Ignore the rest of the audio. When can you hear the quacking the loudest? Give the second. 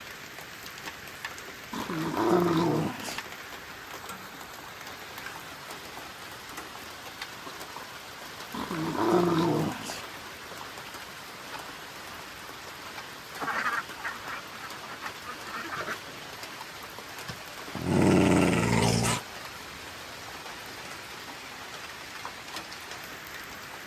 14 s.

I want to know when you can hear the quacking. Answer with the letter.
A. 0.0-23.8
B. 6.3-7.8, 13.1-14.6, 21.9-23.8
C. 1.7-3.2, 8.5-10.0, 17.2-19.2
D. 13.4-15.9
D.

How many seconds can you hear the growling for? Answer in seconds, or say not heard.
5 s.